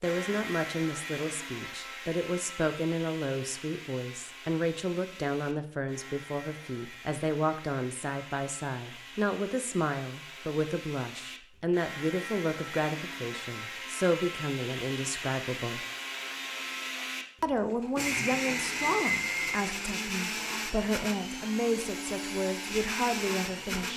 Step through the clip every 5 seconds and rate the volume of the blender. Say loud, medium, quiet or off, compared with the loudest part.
medium, quiet, medium, loud, loud.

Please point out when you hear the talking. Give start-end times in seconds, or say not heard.
0.0-15.8, 17.4-23.9.